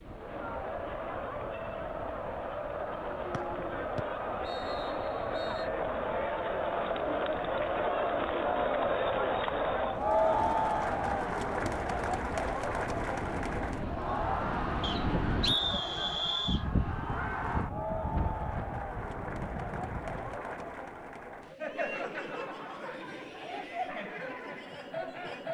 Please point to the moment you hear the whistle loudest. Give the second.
16 s.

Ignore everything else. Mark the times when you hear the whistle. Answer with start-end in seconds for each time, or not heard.
3.3-5.7, 14.8-16.6.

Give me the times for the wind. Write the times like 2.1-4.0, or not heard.
0.0-20.4.